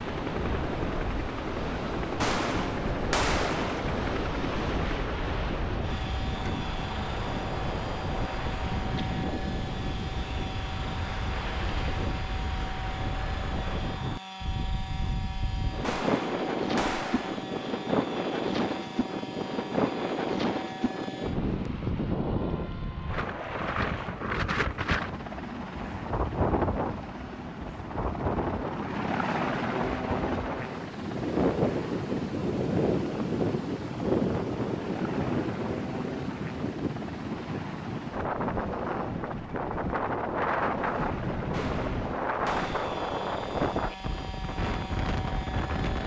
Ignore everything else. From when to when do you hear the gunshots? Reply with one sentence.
You can hear the gunshots from 2.2 to 3.8 s, from 15.8 to 17.4 s and from 41.5 to 43.0 s.